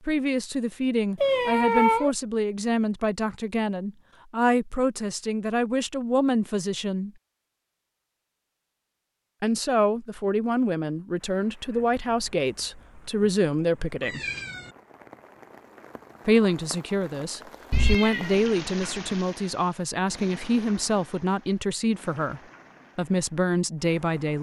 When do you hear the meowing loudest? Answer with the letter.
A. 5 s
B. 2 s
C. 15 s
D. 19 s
B.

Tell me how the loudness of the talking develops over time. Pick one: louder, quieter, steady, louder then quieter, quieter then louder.
steady.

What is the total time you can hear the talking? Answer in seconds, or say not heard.
20 s.